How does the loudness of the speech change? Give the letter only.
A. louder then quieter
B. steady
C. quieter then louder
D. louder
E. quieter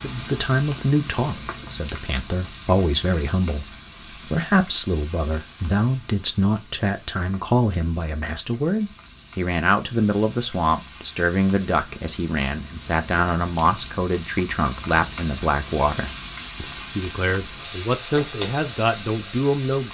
B.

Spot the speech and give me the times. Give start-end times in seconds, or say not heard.
0.0-19.9.